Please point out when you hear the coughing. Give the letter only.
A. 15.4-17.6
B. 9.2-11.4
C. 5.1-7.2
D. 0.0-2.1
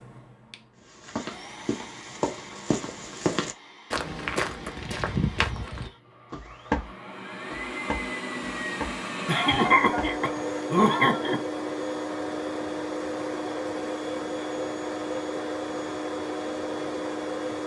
B.